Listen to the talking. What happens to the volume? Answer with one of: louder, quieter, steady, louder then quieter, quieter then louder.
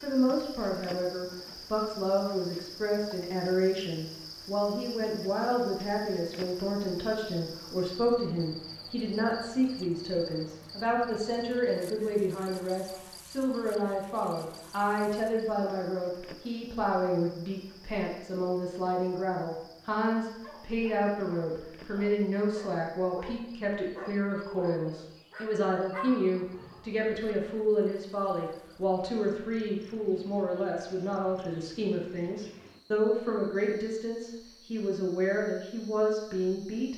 steady.